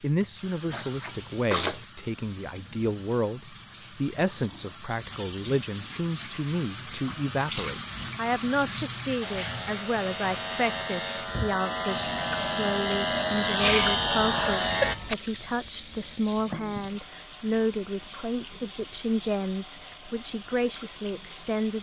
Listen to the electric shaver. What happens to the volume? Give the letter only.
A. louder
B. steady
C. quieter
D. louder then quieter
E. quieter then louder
A.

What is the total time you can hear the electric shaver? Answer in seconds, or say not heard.
6 s.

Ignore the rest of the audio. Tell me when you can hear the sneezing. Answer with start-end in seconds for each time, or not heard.
0.7-1.9, 13.6-15.2.